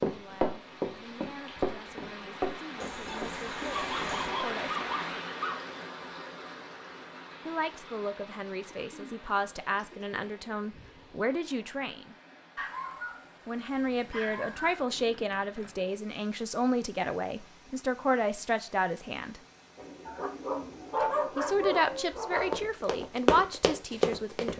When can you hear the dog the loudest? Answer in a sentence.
The volume of the dog peaks at 21 seconds.